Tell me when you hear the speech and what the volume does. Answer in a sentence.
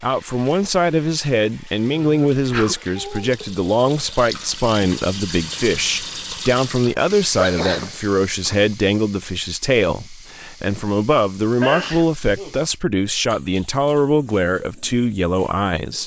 You can hear the speech from 0.0 to 16.0 s, at a steady volume.